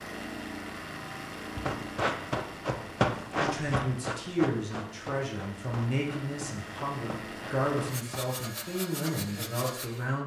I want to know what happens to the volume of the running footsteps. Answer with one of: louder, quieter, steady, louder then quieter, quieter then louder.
quieter.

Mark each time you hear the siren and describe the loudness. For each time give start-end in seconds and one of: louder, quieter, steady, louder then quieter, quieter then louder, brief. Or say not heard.
not heard.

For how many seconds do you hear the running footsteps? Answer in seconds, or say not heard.
7 s.